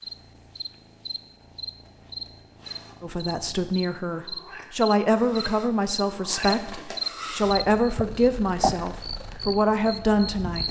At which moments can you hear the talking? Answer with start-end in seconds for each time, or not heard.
3.0-10.6.